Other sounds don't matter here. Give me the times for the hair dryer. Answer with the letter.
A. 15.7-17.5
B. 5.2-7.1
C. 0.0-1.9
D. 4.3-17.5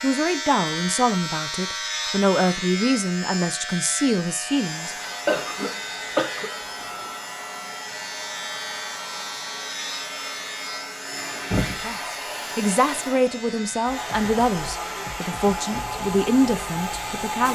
D.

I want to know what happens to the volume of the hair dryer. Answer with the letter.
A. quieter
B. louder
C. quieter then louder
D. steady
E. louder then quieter
B.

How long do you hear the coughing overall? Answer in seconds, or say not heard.
2 s.